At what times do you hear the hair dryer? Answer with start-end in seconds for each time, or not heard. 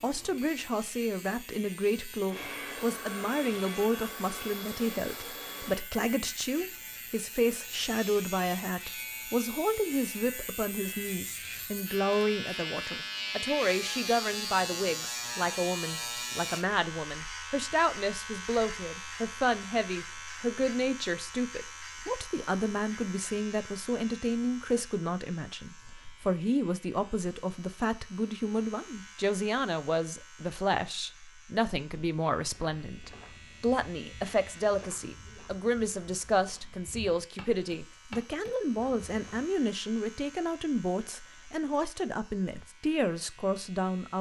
2.2-5.8.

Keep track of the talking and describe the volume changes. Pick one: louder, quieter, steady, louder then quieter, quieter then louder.
steady.